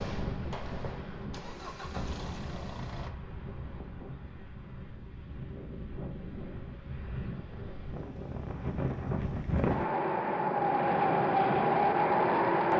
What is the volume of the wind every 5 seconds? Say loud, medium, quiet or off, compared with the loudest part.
quiet, medium, loud.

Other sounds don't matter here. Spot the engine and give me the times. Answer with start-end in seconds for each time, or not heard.
0.0-3.1.